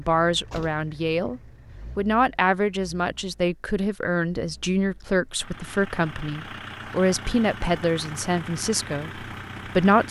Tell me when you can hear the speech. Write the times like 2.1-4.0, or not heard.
0.0-10.0.